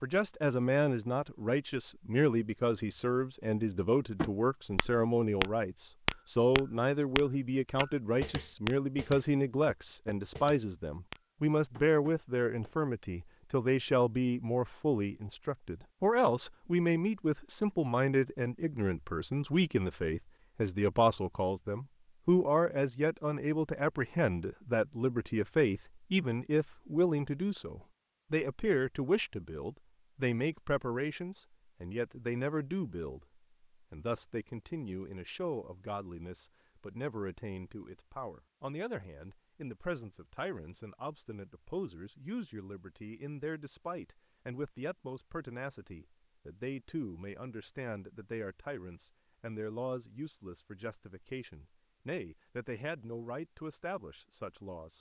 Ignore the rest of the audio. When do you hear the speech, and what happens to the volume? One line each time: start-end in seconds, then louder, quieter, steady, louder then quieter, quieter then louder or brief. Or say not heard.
0.0-54.9 quieter.